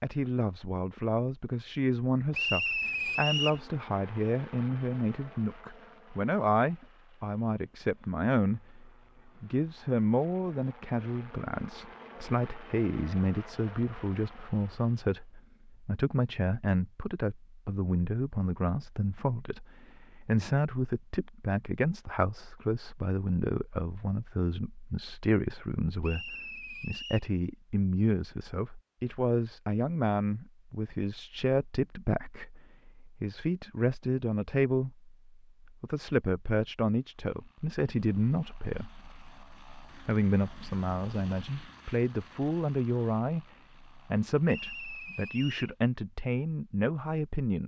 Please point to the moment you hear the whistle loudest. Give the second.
3 s.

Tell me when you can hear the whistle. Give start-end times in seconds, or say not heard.
2.3-3.6, 26.0-27.3, 44.5-45.8.